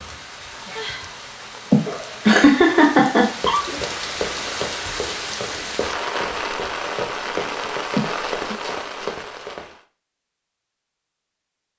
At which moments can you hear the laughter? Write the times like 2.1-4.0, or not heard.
1.7-3.8, 8.0-8.6.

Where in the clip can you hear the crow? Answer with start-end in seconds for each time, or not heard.
not heard.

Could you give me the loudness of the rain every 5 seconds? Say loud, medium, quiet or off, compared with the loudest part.
loud, loud, off.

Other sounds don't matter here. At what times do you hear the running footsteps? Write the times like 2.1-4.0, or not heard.
3.4-9.7.